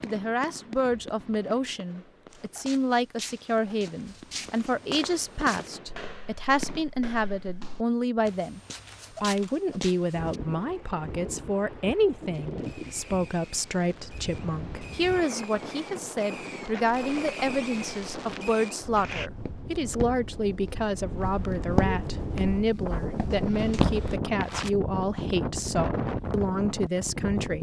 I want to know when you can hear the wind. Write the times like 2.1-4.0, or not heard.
10.1-27.5.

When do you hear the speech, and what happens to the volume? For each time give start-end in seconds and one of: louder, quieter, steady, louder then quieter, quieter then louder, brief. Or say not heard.
0.0-8.6 steady
9.2-27.5 steady.